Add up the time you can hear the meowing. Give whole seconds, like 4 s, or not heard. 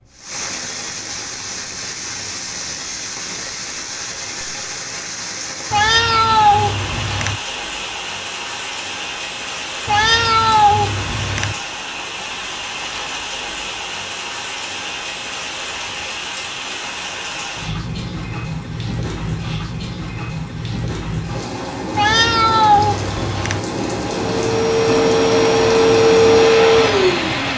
5 s.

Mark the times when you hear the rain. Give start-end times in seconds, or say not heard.
0.1-27.5.